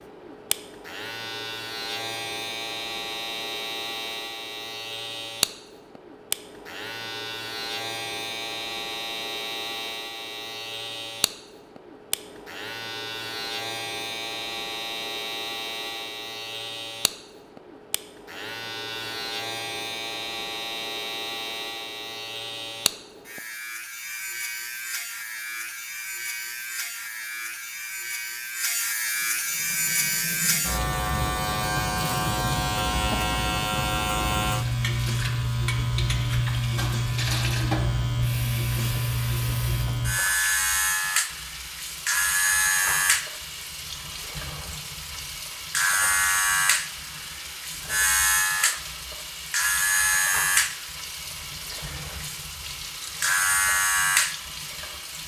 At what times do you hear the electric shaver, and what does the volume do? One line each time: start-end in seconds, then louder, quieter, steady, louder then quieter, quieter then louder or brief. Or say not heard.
0.0-55.2 louder.